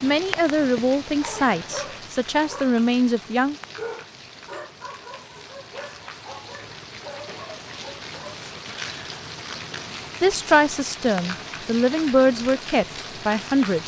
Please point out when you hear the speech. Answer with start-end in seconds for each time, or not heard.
0.0-3.5, 10.2-13.8.